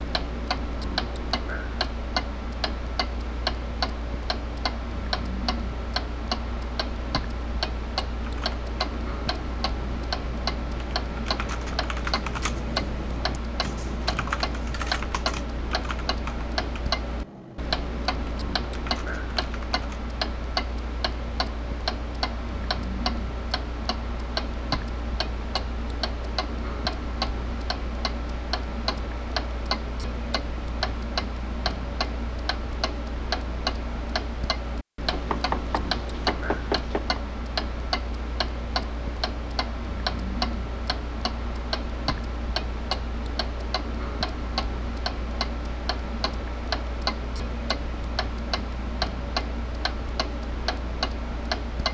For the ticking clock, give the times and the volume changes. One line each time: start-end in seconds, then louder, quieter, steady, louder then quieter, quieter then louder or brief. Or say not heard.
0.0-51.9 steady.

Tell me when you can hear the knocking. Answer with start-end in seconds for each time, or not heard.
35.1-37.2.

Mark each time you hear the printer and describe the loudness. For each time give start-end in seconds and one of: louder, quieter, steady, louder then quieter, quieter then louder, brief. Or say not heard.
not heard.